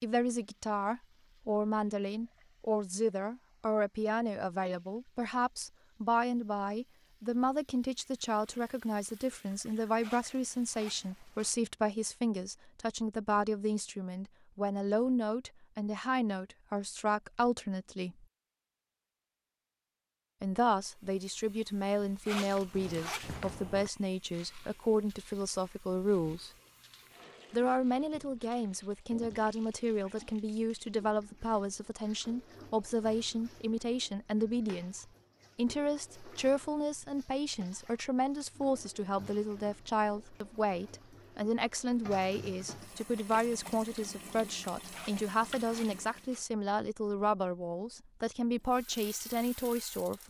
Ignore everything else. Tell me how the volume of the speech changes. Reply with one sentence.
The loudness of the speech stays about the same.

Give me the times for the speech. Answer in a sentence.
The speech can be heard from 0.0 to 18.2 s, from 20.4 to 26.5 s and from 27.5 to 50.2 s.